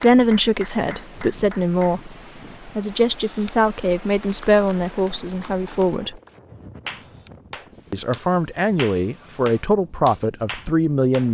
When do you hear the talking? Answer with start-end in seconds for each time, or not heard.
0.0-6.2, 7.9-11.2.